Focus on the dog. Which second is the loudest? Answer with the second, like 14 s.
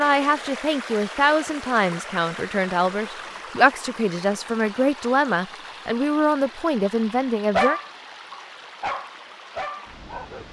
8 s.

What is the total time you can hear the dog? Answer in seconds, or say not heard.
3 s.